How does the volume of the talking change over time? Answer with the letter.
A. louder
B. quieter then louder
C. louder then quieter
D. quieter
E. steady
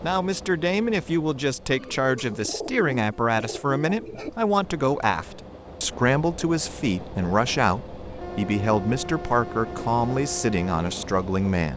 E.